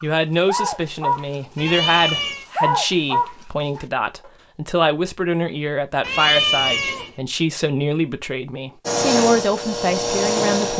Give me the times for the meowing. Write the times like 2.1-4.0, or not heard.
1.6-2.5, 6.0-7.1.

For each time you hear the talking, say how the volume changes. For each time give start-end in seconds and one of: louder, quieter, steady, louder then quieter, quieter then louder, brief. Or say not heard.
0.0-10.7 steady.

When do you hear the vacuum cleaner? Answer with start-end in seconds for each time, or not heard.
8.8-10.7.